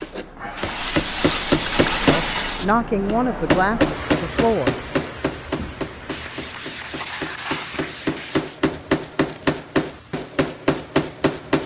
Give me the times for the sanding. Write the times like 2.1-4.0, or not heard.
0.8-2.8, 6.1-8.6.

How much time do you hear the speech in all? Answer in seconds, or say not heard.
3 s.